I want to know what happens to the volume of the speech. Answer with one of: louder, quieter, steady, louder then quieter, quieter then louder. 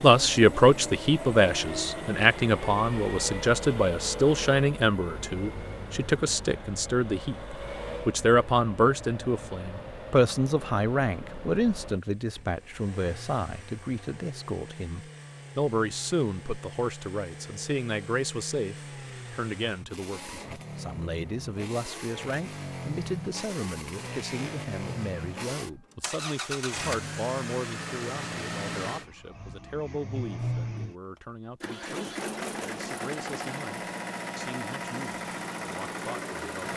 quieter.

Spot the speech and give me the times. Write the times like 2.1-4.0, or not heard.
0.0-36.5.